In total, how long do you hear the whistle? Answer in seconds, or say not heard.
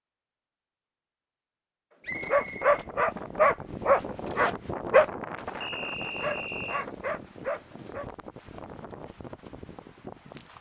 2 s.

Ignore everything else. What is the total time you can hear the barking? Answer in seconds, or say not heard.
6 s.